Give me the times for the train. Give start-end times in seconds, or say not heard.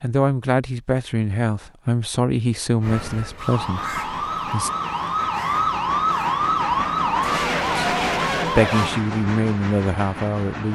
3.5-10.7.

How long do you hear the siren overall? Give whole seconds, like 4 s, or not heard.
6 s.